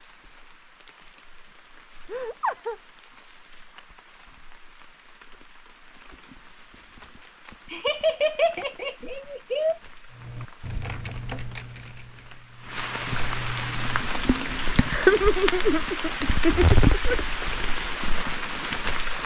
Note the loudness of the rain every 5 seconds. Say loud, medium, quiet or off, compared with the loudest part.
quiet, quiet, medium, loud.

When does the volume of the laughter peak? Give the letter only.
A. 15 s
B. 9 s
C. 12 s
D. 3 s
A.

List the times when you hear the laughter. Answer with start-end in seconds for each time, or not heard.
2.0-2.8, 7.7-9.8, 14.8-17.1.